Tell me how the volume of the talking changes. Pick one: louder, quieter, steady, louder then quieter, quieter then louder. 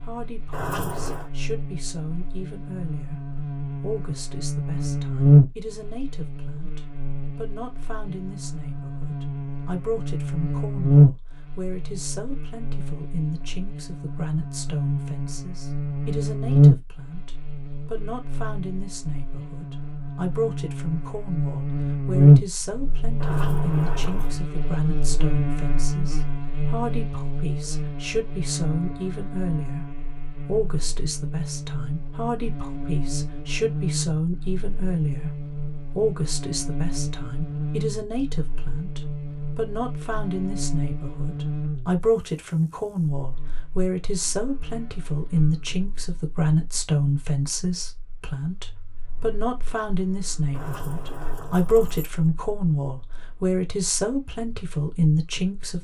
louder.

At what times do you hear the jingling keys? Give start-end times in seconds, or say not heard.
0.5-1.3, 23.2-24.4, 50.5-52.1.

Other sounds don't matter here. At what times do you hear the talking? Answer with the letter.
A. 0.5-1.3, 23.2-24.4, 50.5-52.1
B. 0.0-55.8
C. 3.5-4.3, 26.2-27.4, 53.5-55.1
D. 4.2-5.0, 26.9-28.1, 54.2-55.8
B.